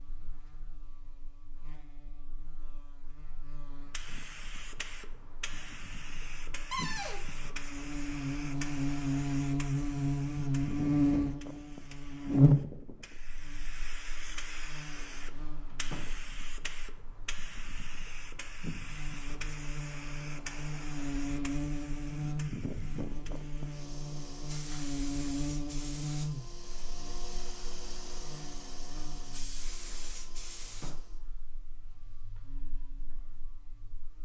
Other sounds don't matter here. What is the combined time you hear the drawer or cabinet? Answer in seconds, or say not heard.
3 s.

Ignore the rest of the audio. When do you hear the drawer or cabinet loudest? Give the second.
7 s.